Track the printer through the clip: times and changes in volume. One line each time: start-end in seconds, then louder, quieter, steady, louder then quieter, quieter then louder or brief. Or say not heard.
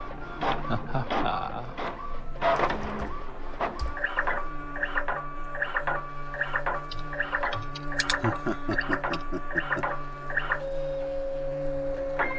0.0-12.3 steady.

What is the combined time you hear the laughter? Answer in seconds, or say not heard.
3 s.